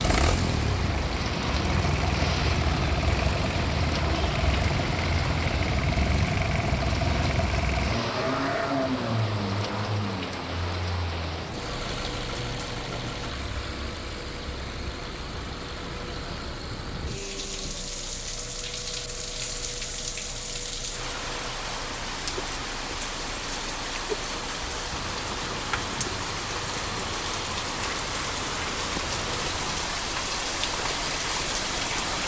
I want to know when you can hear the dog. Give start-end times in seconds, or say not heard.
not heard.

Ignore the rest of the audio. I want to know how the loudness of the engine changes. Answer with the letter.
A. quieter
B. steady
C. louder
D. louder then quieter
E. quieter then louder
A.